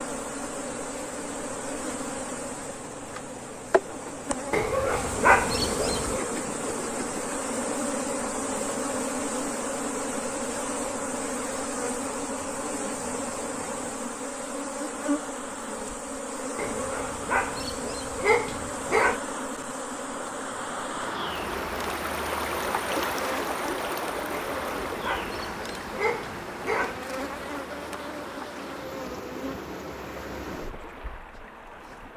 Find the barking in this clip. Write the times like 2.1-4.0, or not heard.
4.5-6.2, 16.6-19.2, 24.3-26.9.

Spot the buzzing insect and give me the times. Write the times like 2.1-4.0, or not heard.
0.0-32.1.